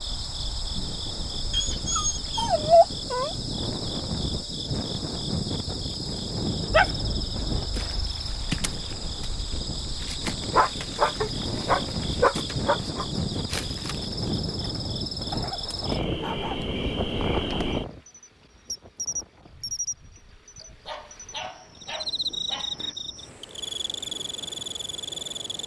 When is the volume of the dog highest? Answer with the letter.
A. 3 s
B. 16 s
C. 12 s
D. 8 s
A.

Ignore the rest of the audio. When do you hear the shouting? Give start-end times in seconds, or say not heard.
not heard.